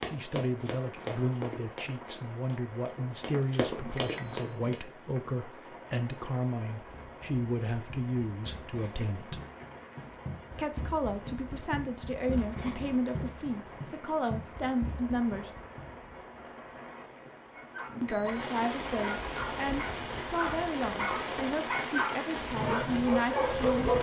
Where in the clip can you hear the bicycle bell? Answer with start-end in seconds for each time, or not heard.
3.8-5.3, 17.9-18.6.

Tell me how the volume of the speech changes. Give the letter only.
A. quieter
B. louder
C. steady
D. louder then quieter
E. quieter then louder
C.